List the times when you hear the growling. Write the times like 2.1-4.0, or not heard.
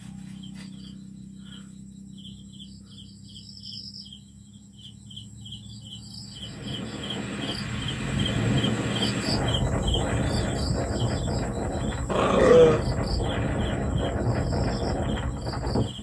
12.1-12.8.